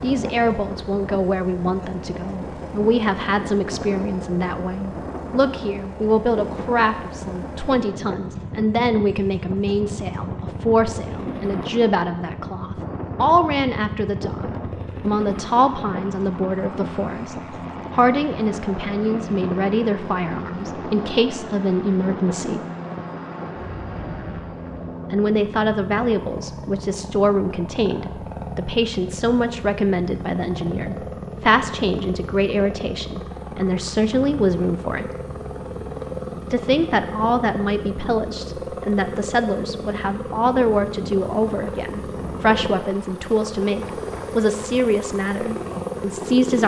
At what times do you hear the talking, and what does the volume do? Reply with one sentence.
The talking can be heard from 0.0 to 22.6 s, at a steady volume; from 25.1 to 35.1 s, at a steady volume; and from 36.5 to 46.6 s, at a steady volume.